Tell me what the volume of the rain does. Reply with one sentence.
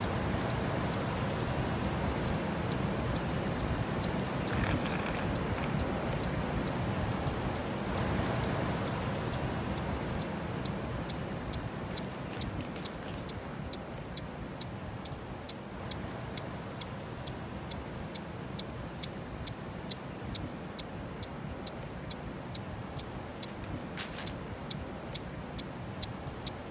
The loudness of the rain goes down.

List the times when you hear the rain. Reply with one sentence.
You can hear the rain from 0.0 to 26.6 s.